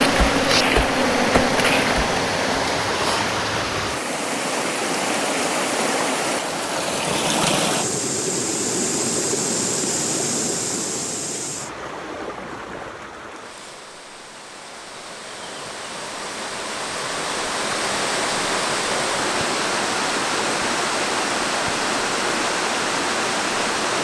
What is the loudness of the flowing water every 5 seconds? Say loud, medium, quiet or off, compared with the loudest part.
loud, loud, medium, loud, loud.